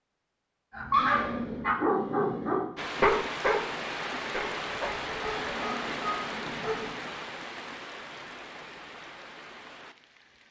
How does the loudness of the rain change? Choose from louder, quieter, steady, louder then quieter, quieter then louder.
quieter.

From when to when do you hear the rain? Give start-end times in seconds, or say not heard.
2.8-10.4.